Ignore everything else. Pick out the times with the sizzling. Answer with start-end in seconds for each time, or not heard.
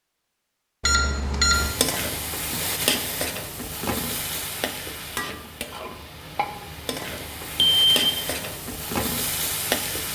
1.5-10.1.